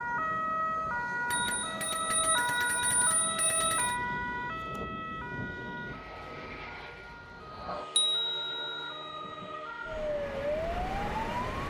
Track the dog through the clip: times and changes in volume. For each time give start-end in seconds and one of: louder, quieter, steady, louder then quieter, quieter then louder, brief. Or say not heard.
not heard.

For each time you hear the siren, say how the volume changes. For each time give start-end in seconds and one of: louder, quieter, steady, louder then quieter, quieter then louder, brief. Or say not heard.
0.0-11.6 quieter then louder.